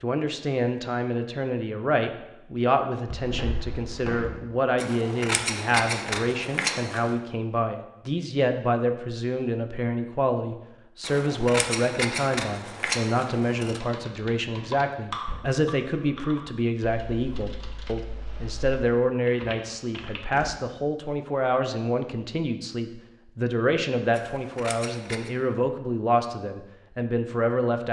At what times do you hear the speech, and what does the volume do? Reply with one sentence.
You can hear the speech from 0.0 to 27.8 s, at a steady volume.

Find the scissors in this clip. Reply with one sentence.
You can hear the scissors from 4.8 to 7.2 s, from 11.0 to 13.8 s and from 24.1 to 25.3 s.